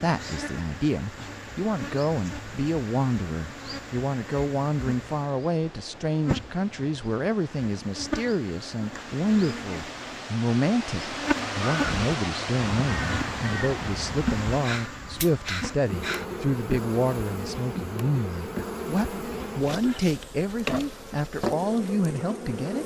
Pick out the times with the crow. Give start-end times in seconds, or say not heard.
11.6-16.2.